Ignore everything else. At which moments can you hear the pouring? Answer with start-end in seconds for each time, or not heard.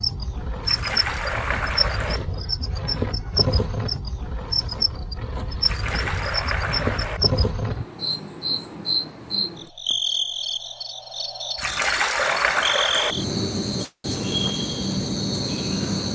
0.6-2.2, 5.6-7.2, 11.6-13.2.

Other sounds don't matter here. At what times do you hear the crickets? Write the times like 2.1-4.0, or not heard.
0.0-16.1.